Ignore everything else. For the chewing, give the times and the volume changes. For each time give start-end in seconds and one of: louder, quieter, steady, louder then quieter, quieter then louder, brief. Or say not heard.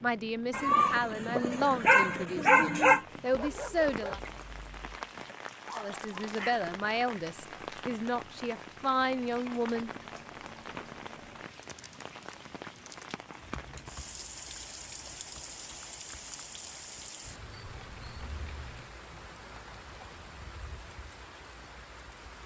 not heard.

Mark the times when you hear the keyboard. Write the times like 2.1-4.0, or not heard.
9.7-18.9.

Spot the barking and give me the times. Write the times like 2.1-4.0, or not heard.
0.5-6.5.